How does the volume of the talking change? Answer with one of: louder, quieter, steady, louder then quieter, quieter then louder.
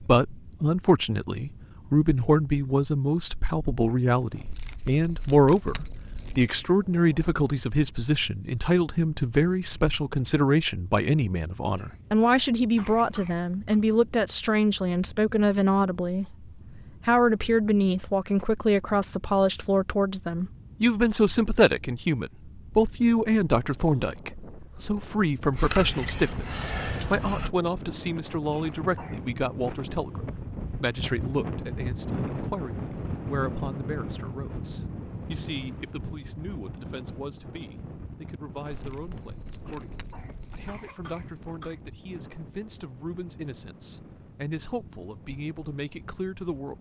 quieter.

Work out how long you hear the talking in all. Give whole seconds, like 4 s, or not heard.
46 s.